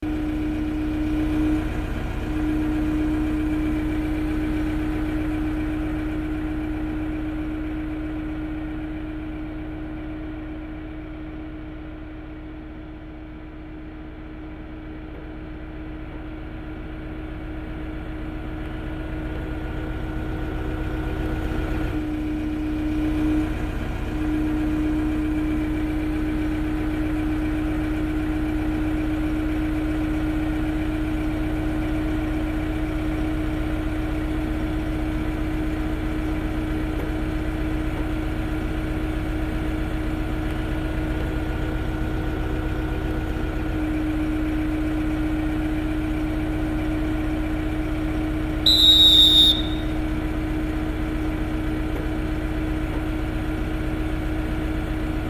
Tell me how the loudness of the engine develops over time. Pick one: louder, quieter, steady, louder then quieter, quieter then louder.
quieter then louder.